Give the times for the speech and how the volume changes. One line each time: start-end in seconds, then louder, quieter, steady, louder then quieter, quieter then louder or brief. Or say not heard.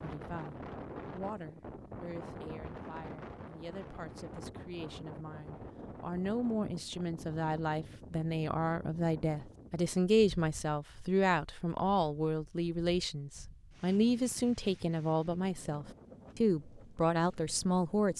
0.0-18.1 louder.